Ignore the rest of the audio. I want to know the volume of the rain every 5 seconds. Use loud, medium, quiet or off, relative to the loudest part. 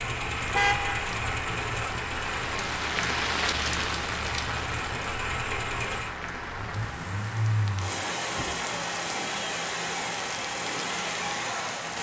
loud, medium, medium.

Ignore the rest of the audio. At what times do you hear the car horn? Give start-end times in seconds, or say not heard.
0.5-1.1.